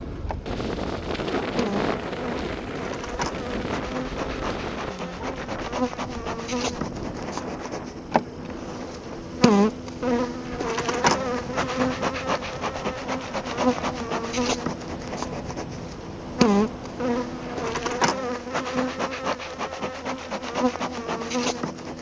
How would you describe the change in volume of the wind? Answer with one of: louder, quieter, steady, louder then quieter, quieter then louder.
quieter.